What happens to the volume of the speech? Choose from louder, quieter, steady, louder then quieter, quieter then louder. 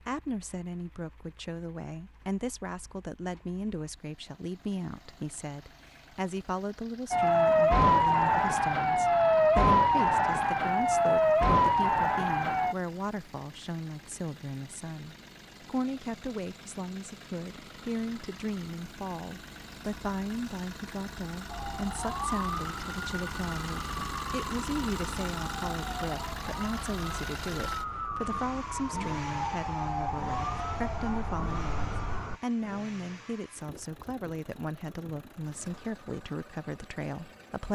steady.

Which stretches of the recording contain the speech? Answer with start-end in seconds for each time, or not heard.
0.1-37.7.